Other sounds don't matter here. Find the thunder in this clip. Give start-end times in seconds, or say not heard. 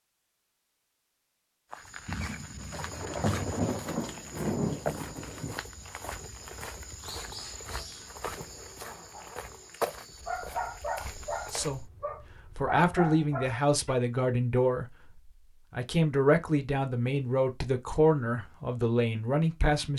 2.0-5.6.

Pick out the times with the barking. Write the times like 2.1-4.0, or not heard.
7.3-13.9.